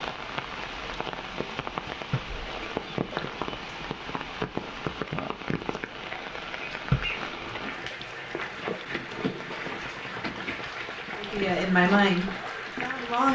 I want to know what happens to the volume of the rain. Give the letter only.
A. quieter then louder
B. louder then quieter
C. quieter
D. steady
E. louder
D.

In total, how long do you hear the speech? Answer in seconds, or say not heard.
2 s.